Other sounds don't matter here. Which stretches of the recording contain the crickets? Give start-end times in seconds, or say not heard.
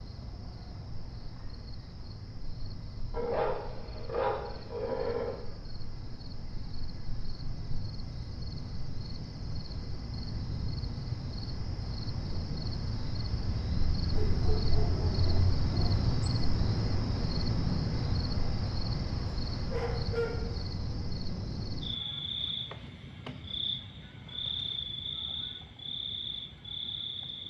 0.0-27.4.